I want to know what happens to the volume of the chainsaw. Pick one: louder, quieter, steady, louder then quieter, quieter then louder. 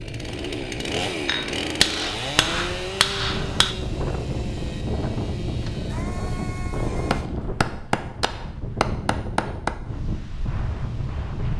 quieter.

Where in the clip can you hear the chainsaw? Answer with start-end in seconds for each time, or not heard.
0.0-7.3.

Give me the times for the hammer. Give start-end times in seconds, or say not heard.
1.2-3.8, 7.1-9.8.